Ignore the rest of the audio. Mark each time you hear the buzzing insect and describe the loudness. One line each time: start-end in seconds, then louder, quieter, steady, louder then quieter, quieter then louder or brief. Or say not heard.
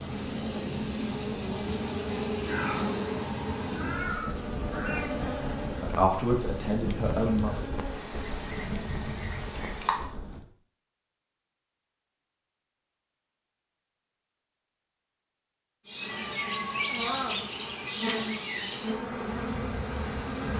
0.0-10.1 quieter
15.8-20.5 steady.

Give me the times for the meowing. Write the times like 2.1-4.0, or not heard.
2.5-5.2, 16.1-17.4.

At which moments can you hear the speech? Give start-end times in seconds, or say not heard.
5.8-7.7.